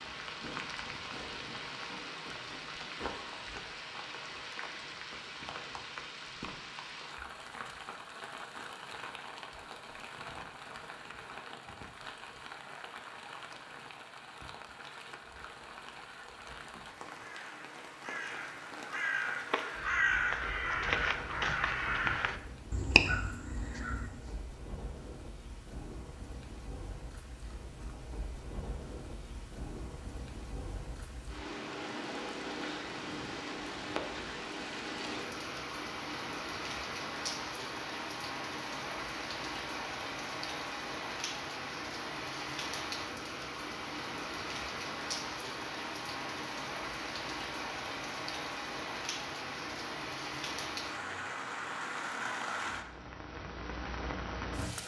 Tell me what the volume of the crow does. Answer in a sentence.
The volume of the crow goes up.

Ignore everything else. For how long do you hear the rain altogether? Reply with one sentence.
You can hear the rain for 55 seconds altogether.